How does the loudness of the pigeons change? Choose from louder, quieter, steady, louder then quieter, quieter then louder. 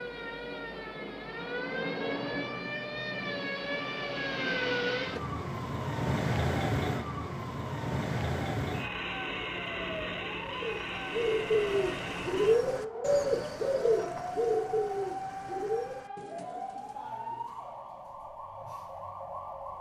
quieter.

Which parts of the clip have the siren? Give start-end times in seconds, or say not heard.
0.0-19.7.